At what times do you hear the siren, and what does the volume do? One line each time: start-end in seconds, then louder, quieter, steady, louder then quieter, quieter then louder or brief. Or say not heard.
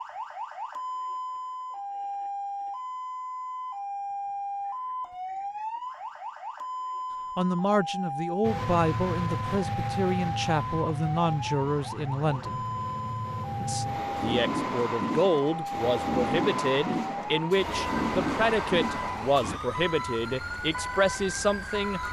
0.0-22.0 steady.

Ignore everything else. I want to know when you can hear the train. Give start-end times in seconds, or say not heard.
8.4-19.6.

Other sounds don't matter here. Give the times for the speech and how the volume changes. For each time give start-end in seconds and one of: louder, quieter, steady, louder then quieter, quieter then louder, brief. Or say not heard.
7.3-12.7 steady
13.6-22.0 steady.